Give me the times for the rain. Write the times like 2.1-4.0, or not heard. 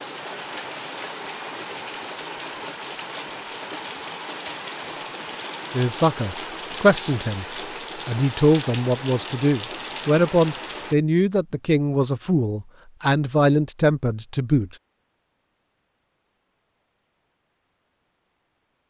0.0-10.9.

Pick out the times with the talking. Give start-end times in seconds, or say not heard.
5.7-7.5, 8.1-14.8.